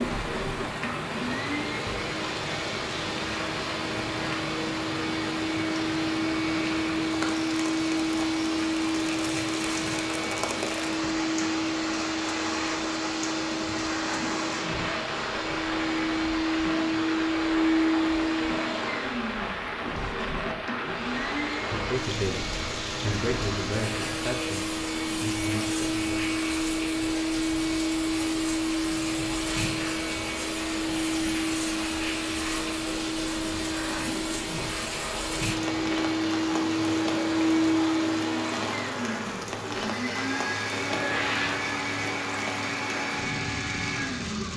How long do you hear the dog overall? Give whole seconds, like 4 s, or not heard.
not heard.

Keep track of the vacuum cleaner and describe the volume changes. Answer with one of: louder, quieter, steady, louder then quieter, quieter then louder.
steady.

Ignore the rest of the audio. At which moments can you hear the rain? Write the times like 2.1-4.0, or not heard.
0.0-44.5.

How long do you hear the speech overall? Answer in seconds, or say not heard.
5 s.